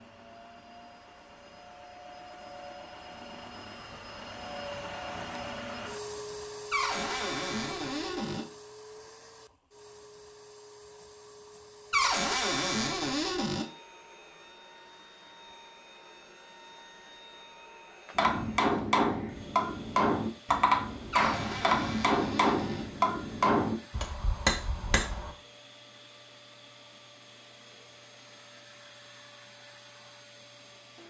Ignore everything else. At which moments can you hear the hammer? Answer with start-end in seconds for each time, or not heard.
18.1-25.3.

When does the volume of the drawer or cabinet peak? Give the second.
12 s.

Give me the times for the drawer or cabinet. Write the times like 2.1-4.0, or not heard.
6.7-8.4, 11.9-13.7, 21.1-22.9.